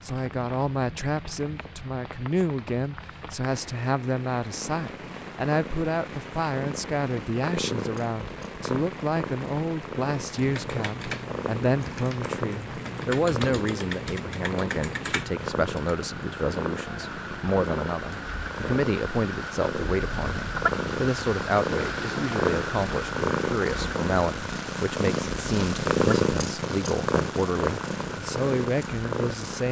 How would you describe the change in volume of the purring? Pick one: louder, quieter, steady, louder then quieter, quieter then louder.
louder.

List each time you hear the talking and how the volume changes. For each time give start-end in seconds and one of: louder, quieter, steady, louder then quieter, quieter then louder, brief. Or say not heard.
0.0-29.6 steady.